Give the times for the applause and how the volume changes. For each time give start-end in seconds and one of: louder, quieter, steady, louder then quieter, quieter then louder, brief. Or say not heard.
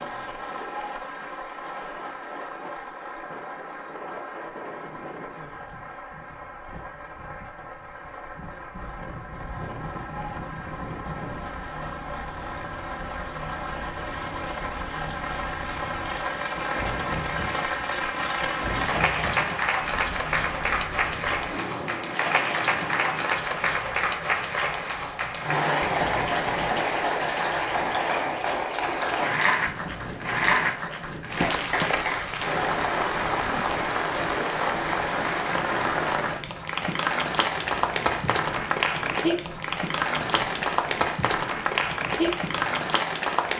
0.0-43.5 louder.